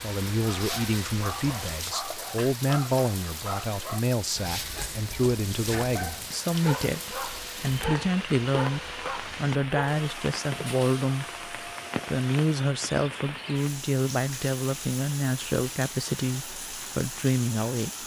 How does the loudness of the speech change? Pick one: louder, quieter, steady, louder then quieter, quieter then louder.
steady.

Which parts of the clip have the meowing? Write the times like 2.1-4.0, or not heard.
not heard.